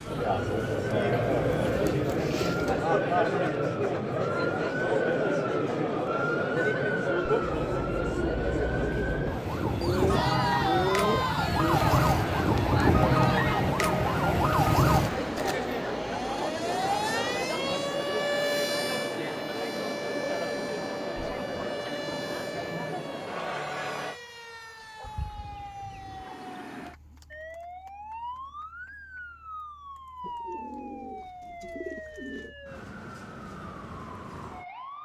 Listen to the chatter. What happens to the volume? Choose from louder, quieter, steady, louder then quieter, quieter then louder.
quieter.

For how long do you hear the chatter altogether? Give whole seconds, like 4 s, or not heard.
24 s.